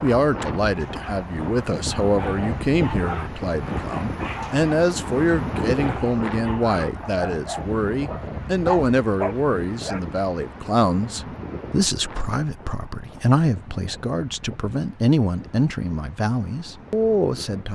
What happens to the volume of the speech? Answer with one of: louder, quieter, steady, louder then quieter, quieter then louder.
steady.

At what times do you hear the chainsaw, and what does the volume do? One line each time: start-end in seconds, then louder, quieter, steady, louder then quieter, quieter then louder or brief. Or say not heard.
not heard.